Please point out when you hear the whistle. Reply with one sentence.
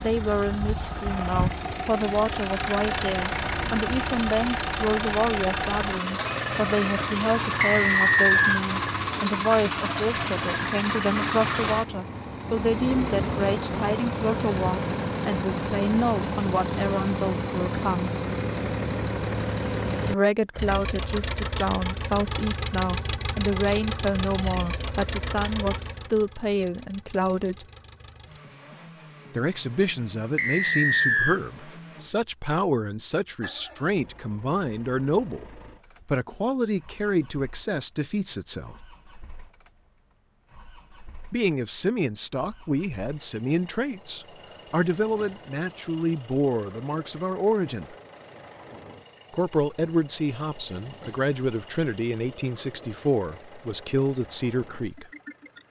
You can hear the whistle from 7.6 to 8.6 s and from 30.4 to 31.4 s.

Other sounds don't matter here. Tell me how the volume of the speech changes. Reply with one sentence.
The loudness of the speech stays about the same.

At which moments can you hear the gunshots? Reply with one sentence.
The gunshots can't be heard in this clip.